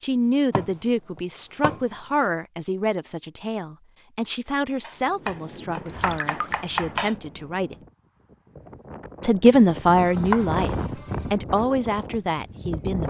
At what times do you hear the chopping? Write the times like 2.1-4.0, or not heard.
0.5-1.9, 4.8-7.2, 9.6-11.3.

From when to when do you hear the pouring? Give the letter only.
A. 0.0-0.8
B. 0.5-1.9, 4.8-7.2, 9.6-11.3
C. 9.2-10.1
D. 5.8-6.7
D.